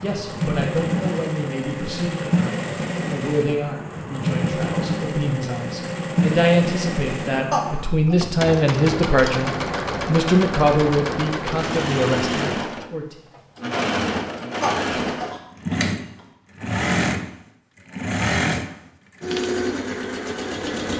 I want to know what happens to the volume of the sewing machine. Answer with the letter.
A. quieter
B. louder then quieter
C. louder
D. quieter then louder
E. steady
E.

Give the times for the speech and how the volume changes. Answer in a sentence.
You can hear the speech from 0.0 to 13.2 s, getting louder.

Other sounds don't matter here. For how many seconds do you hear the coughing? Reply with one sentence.
The coughing can be heard for 2 seconds in total.